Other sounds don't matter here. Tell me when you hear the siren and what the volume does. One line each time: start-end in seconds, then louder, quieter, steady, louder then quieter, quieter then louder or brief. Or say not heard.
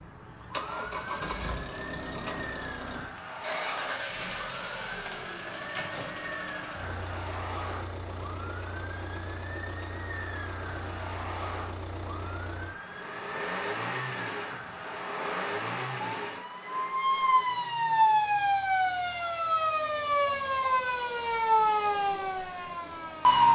0.0-23.4 louder.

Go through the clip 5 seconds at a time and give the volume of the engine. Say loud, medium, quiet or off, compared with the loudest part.
loud, loud, loud, loud, quiet.